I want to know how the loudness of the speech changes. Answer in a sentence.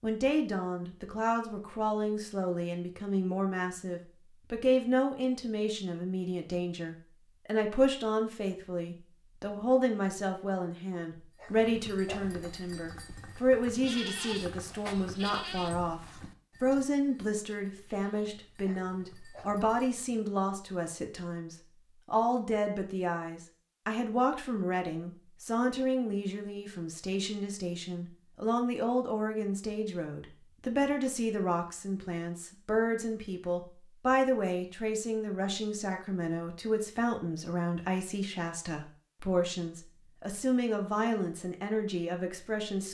The volume of the speech stays about the same.